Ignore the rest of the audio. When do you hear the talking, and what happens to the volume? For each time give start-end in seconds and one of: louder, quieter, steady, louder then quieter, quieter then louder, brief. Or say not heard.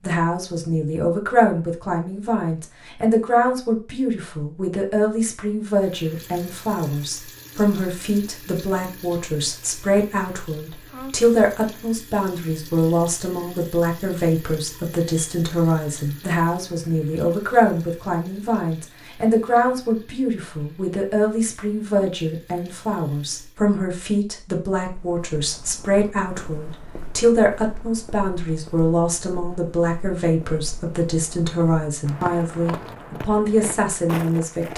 0.0-34.7 steady.